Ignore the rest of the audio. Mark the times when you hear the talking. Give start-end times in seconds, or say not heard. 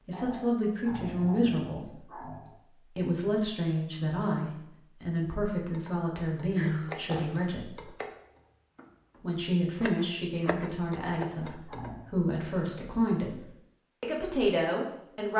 0.1-7.8, 9.2-15.3.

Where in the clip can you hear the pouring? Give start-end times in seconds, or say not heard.
not heard.